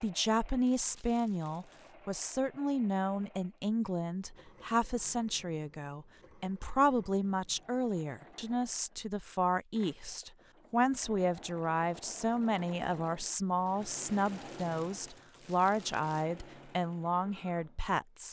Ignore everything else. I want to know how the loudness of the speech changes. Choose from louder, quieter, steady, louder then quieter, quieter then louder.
steady.